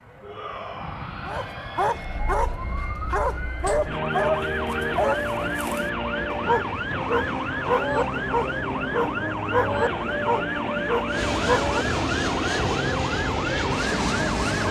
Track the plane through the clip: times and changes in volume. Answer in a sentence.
You can hear the plane from 0.0 to 14.6 s, getting louder.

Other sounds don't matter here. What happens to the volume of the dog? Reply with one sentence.
The loudness of the dog stays about the same.